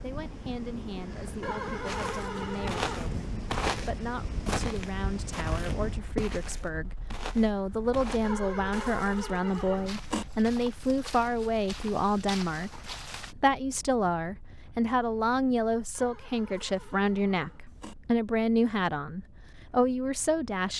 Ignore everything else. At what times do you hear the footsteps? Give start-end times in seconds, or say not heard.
1.9-13.3.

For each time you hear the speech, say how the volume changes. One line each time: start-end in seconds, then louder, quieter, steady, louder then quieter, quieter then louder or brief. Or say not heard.
0.0-20.7 louder.